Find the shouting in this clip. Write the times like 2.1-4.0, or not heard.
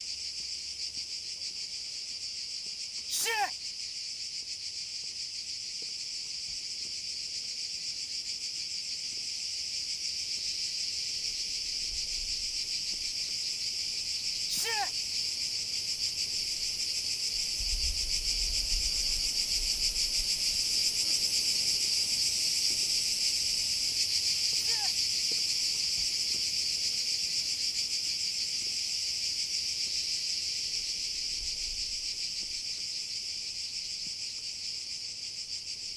3.0-3.5, 14.4-14.9, 24.5-24.9.